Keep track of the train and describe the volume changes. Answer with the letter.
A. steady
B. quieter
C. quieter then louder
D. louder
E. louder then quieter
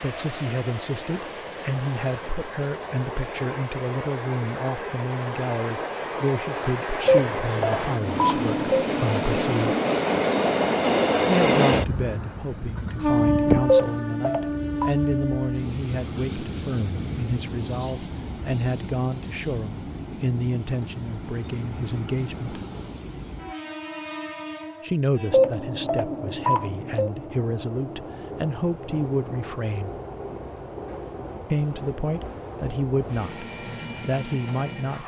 E.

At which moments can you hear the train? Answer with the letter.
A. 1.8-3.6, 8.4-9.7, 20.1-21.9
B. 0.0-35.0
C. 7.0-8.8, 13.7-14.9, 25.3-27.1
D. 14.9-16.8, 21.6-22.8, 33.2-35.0
B.